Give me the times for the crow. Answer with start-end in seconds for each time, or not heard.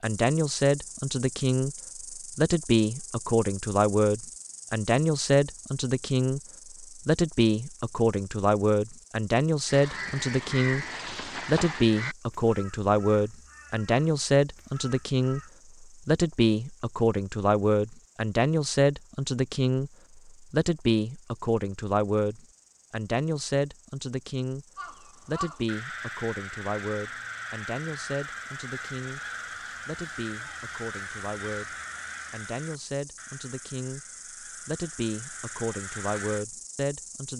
9.7-15.6, 24.8-36.5.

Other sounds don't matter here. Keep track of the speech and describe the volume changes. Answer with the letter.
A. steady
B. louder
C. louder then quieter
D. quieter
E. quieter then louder
D.